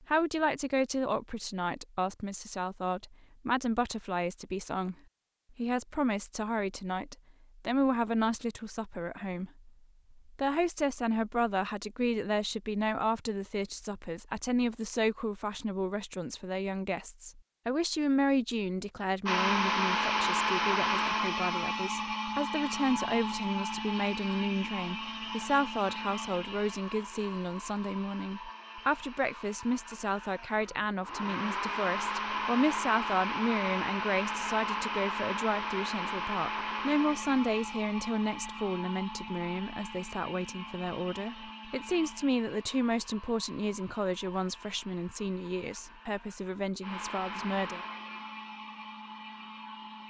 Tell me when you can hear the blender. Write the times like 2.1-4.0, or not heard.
19.2-50.0.